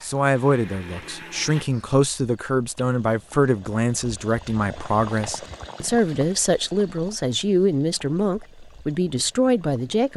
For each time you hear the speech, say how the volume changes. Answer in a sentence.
The speech can be heard from 0.0 to 10.1 s, at a steady volume.